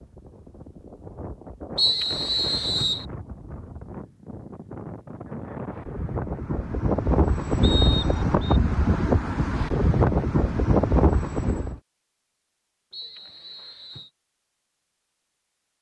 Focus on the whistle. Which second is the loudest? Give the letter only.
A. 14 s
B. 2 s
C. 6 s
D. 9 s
B.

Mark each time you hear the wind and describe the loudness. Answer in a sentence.
You can hear the wind from 0.0 to 11.8 s, getting louder.